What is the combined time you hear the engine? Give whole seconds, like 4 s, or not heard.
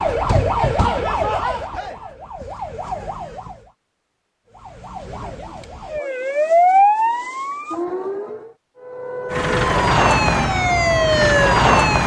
3 s.